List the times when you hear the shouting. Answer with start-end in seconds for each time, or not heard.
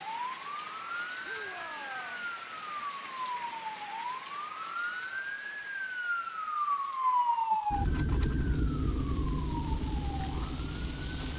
1.2-2.3.